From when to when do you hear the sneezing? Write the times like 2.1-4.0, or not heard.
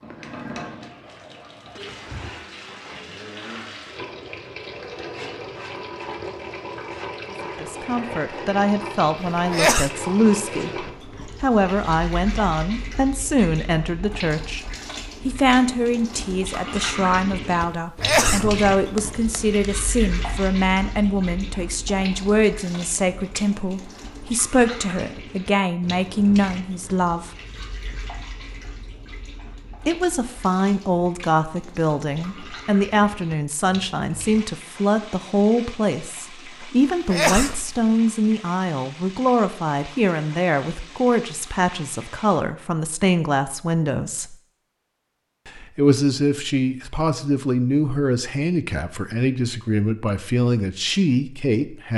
9.5-9.9, 18.0-19.4, 37.1-37.8.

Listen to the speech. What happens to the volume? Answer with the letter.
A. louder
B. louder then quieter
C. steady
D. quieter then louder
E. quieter
C.